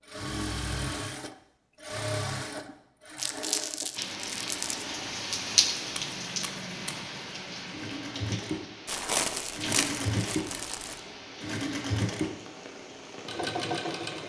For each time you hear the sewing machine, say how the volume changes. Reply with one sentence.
The sewing machine can be heard from 0.1 to 14.2 s, getting quieter then louder.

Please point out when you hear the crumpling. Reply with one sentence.
The crumpling can be heard from 3.1 to 4.8 s and from 8.8 to 11.0 s.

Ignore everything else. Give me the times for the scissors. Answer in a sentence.
You can hear the scissors from 5.8 to 7.0 s.